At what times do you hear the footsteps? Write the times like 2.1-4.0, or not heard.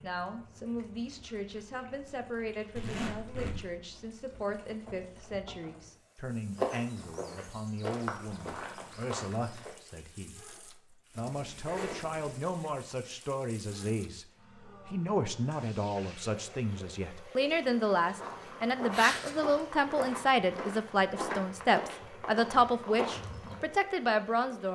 6.5-9.8, 18.1-23.6.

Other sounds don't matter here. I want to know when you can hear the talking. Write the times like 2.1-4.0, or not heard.
0.0-24.7.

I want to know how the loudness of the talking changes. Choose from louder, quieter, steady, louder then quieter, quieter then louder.
louder.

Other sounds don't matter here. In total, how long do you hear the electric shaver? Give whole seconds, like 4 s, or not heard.
not heard.